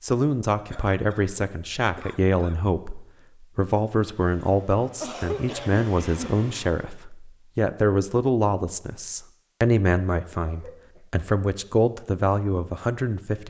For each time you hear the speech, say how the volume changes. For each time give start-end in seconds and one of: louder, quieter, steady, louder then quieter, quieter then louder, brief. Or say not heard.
0.0-13.4 steady.